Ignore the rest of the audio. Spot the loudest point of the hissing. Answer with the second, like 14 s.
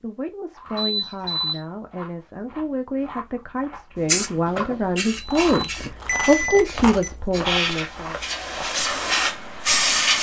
10 s.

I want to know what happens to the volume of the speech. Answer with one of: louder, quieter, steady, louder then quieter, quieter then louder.
louder.